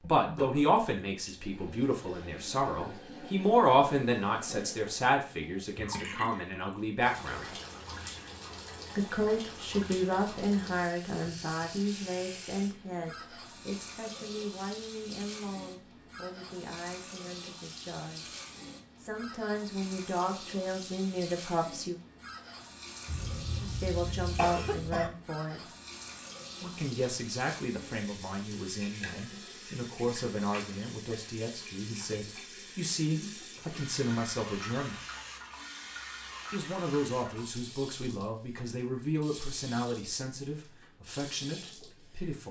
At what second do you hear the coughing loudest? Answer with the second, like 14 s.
25 s.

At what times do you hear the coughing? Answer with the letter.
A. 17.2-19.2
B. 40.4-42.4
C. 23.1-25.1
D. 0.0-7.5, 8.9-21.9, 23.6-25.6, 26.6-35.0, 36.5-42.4
C.